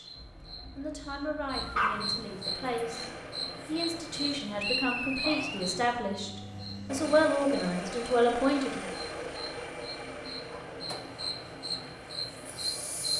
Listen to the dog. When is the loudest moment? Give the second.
2 s.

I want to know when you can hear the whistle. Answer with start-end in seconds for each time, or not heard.
4.5-5.7.